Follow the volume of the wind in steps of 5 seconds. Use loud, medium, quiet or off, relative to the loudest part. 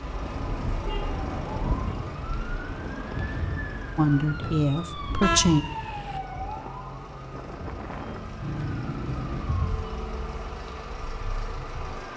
loud, medium, off.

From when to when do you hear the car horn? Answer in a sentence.
You can hear the car horn from 0.1 to 2.1 s, from 5.2 to 6.2 s and from 8.4 to 9.5 s.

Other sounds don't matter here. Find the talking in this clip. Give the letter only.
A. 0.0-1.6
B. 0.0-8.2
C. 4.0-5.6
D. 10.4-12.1
C.